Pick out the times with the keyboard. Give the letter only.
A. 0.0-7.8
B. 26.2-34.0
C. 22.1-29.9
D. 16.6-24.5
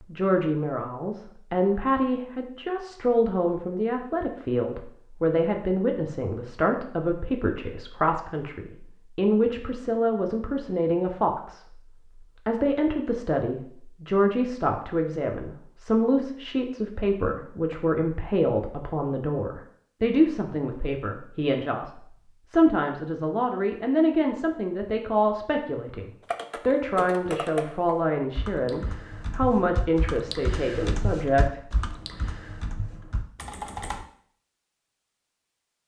B.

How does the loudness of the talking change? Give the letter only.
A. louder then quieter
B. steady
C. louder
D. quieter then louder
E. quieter
B.